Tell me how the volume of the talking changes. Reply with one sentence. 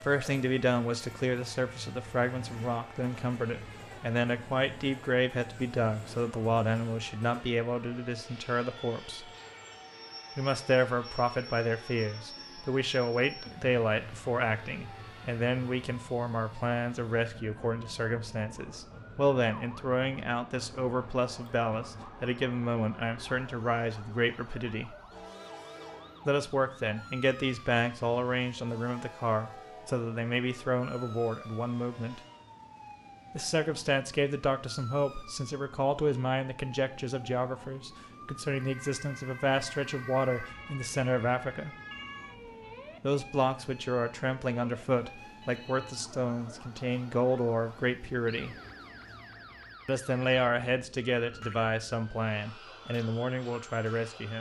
The volume of the talking stays about the same.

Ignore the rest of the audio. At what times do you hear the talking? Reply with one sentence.
You can hear the talking from 0.0 to 9.2 s, from 10.3 to 24.9 s, from 26.2 to 32.2 s, from 33.4 to 41.8 s, from 43.0 to 48.5 s and from 49.9 to 54.3 s.